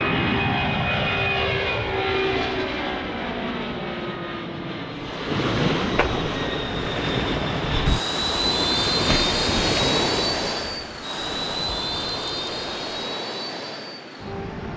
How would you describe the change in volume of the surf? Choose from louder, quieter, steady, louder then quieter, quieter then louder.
quieter.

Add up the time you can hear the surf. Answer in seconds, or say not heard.
10 s.